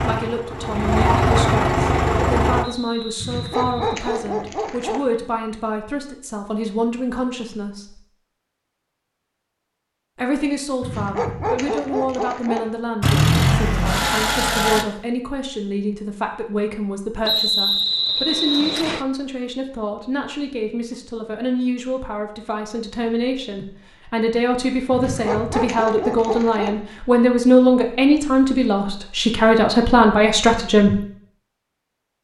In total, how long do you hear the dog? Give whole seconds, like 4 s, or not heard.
6 s.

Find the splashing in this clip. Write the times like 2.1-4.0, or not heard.
not heard.